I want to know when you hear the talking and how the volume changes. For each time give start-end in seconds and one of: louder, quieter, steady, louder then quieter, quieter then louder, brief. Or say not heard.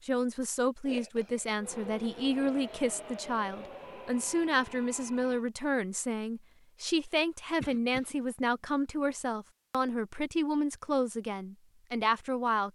0.0-12.6 steady.